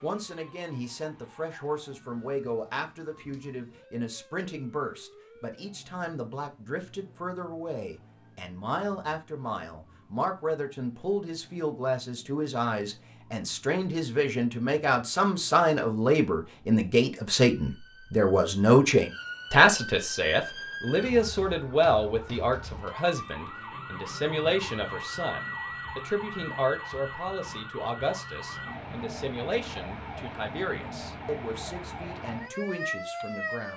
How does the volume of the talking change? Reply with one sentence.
The volume of the talking goes up, then down.